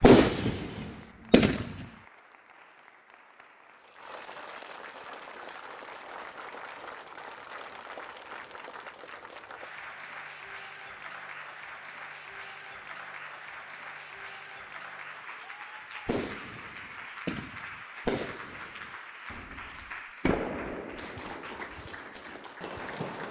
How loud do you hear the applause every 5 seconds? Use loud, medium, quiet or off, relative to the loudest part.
medium, loud, loud, loud, loud.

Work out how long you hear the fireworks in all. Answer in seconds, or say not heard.
9 s.